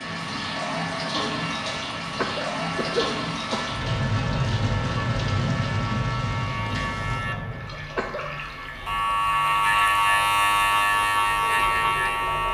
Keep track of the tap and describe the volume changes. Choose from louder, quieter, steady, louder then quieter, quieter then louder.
quieter.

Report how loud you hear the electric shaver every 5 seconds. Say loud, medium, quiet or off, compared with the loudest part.
quiet, medium, loud.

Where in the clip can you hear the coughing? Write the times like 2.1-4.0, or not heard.
2.0-3.8, 7.7-8.3.